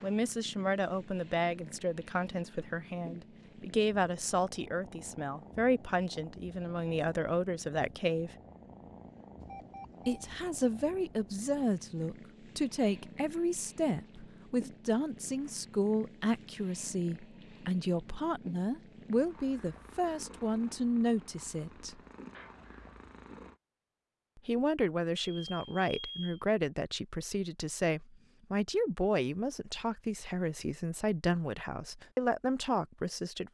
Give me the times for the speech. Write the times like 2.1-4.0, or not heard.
0.0-8.3, 10.1-22.0, 24.4-33.4.